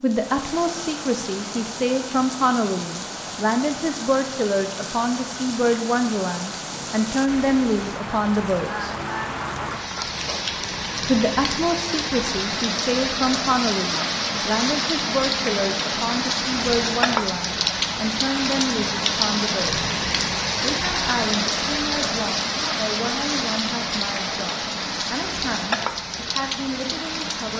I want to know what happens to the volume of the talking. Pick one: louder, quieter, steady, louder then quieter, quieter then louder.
quieter.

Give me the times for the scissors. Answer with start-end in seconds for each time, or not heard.
not heard.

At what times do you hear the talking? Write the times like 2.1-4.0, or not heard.
0.0-8.9, 11.1-19.9, 20.6-27.5.